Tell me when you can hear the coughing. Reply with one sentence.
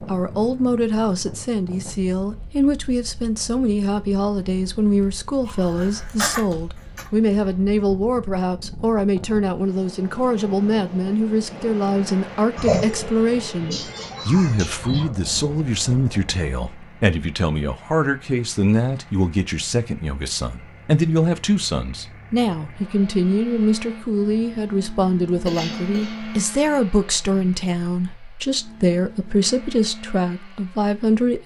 The coughing can be heard from 5.5 to 7.1 s, from 12.6 to 15.2 s and from 25.4 to 26.6 s.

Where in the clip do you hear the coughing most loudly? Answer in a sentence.
The loudest moment of the coughing is at 13 seconds.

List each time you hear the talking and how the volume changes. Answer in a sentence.
You can hear the talking from 0.0 to 31.4 s, at a steady volume.